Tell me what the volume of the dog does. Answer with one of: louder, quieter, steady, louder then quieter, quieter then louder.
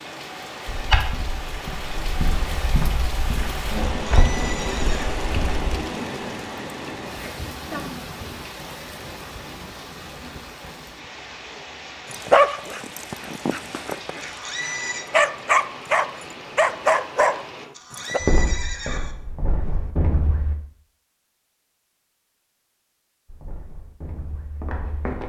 louder.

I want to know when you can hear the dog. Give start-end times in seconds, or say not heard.
12.1-18.2.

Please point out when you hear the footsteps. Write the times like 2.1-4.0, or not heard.
0.7-5.8, 18.2-20.6, 23.2-25.2.